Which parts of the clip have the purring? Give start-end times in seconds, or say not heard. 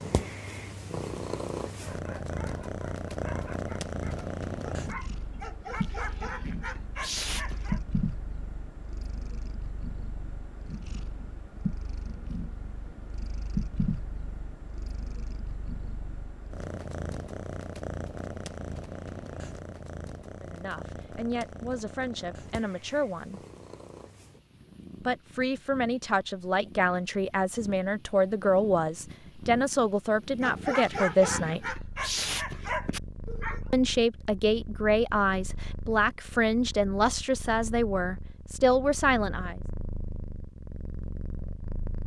0.0-42.0.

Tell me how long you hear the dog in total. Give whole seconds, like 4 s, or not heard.
9 s.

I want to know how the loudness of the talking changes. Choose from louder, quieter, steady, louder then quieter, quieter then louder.
louder.